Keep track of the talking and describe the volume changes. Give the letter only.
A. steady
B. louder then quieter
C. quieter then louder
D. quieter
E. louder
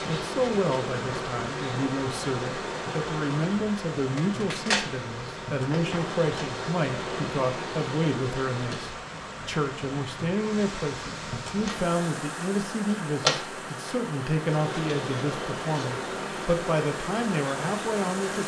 A.